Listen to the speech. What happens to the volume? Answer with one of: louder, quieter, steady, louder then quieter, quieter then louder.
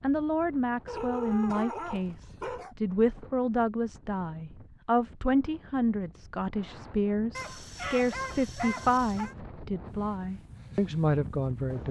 steady.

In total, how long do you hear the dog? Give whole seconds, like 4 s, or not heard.
4 s.